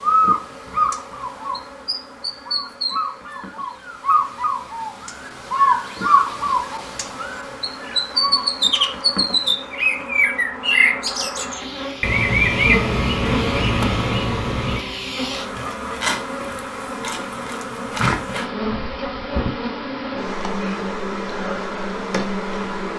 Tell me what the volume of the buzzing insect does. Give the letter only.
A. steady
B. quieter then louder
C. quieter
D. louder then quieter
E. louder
E.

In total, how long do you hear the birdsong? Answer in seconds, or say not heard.
15 s.